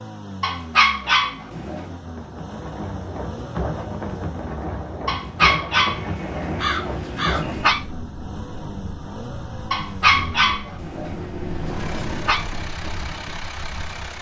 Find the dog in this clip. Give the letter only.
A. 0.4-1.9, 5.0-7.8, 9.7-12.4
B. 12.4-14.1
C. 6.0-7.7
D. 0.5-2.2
A.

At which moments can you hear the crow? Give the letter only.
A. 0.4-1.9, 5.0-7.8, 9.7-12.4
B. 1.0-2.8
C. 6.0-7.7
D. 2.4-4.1
C.